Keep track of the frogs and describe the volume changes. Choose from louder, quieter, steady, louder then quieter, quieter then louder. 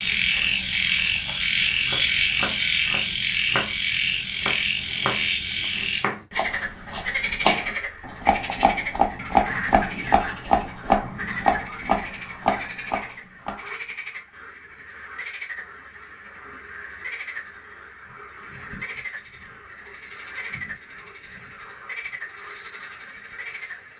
quieter.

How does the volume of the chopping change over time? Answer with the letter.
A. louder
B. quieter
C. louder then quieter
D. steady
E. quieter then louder
A.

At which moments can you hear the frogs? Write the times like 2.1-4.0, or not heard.
0.0-23.9.